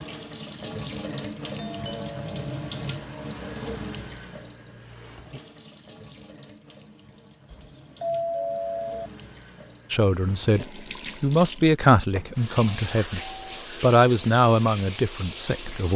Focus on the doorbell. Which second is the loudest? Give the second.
8 s.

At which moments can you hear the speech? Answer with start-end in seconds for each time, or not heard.
9.9-13.2, 13.8-15.9.